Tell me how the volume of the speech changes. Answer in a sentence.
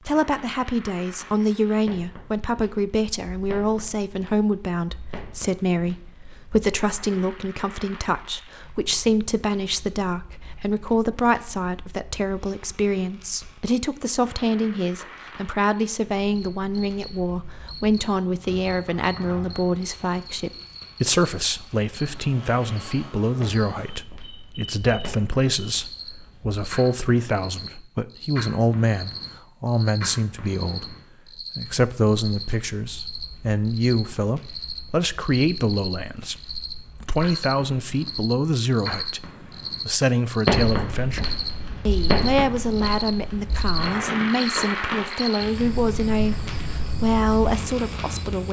The loudness of the speech stays about the same.